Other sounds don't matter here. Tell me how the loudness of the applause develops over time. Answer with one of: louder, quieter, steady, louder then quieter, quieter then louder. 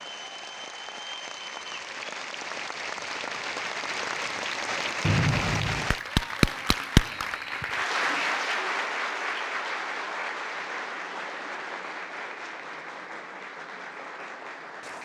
louder then quieter.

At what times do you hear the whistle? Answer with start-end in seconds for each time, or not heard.
5.0-5.9.